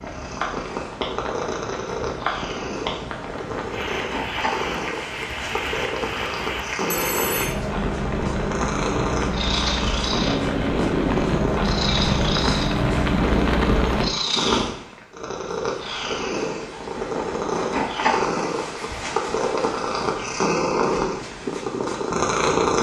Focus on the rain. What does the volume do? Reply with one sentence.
The loudness of the rain goes up.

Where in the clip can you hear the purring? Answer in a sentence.
You can hear the purring from 0.0 to 22.7 s.